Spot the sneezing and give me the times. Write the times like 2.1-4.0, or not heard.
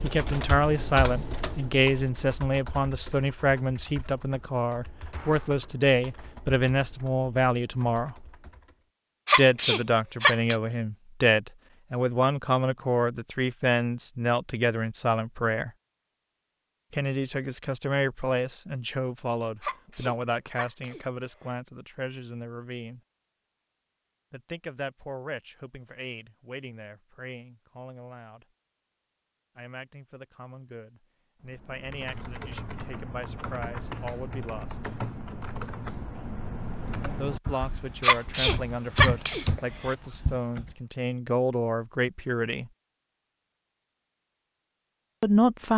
9.2-10.6, 19.6-21.5, 38.0-40.0.